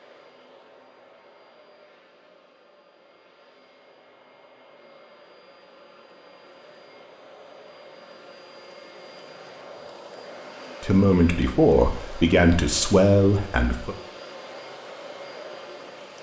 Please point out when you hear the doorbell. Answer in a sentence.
The doorbell can't be heard in this clip.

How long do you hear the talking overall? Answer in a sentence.
You can hear the talking for 3 seconds altogether.